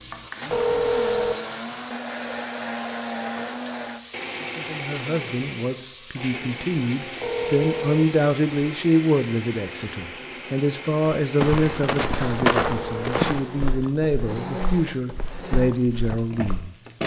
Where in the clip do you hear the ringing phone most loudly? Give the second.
1 s.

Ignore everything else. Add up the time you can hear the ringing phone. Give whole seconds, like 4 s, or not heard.
2 s.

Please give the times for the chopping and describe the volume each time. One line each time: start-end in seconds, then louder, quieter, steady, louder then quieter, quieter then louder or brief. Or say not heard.
not heard.